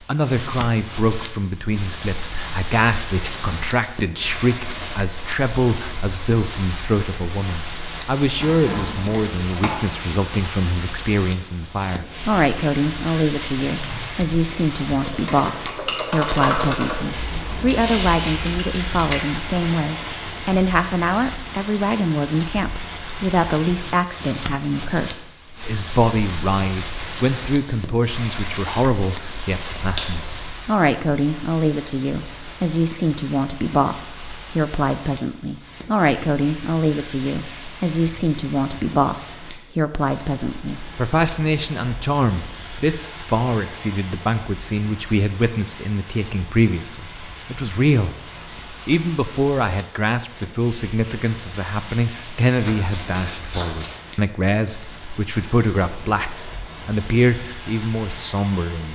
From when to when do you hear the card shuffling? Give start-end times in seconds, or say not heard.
8.4-9.8, 28.6-30.2, 52.5-54.0.